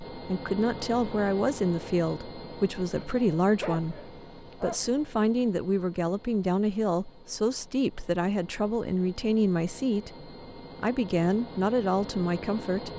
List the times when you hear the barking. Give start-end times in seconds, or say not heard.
2.9-4.9.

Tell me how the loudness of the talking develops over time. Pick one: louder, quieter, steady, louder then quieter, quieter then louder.
steady.